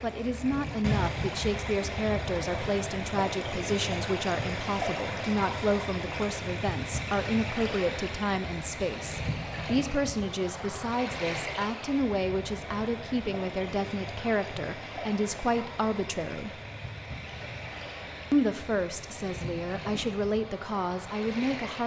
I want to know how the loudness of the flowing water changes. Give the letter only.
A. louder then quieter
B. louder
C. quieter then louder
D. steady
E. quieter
E.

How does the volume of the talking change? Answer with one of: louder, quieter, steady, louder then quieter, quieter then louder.
steady.